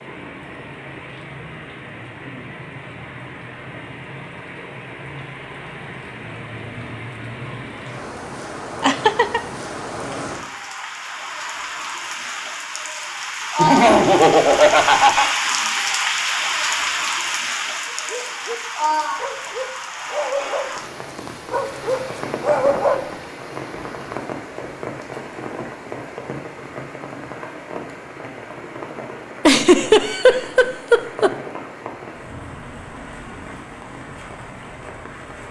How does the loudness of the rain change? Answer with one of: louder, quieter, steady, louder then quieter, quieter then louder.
louder then quieter.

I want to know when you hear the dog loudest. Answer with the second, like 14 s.
23 s.